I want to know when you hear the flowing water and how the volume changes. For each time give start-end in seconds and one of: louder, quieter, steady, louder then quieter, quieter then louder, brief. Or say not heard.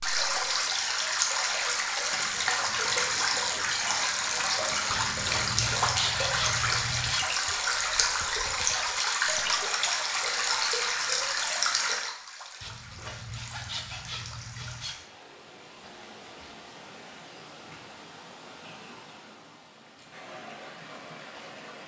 0.0-21.8 quieter.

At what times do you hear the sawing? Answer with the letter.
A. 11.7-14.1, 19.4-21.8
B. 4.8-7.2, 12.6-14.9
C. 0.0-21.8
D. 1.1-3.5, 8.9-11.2
B.